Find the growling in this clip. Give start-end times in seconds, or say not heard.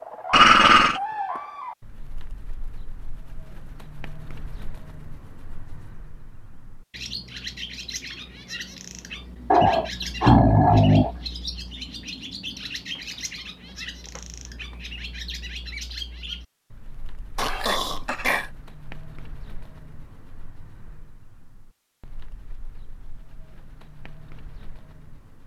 0.3-1.0, 9.5-11.2, 17.4-18.5.